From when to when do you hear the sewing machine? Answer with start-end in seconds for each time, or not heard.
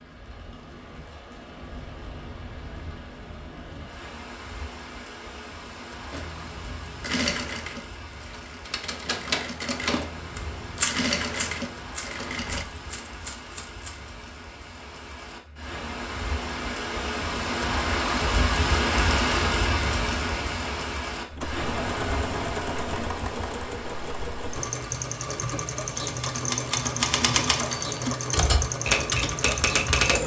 6.1-12.7, 21.3-30.2.